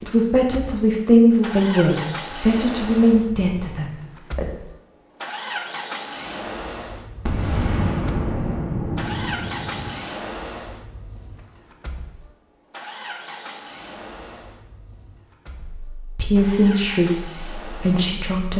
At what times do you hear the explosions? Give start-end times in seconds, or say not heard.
7.2-10.0.